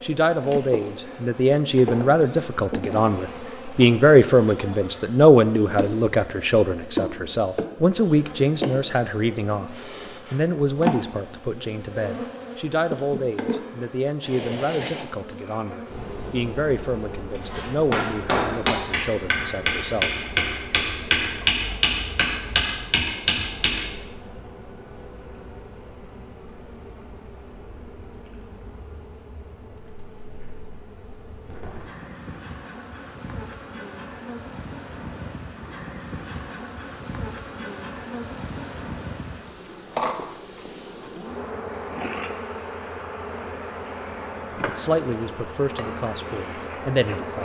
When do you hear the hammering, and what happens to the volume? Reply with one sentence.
The hammering can be heard from 17.4 to 23.9 s, at a steady volume.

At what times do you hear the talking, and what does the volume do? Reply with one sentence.
The talking can be heard from 0.0 to 20.1 s, getting quieter; and briefly from 44.6 to 47.3 s.